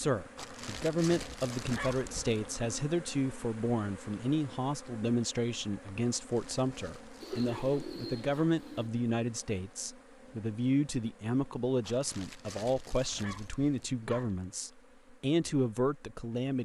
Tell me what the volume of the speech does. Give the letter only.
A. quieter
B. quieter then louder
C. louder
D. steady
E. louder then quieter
D.